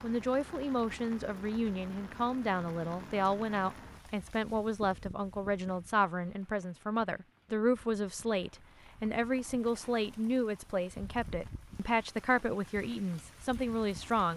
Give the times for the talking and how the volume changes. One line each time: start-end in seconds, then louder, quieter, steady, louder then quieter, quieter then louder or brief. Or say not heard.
0.0-14.3 steady.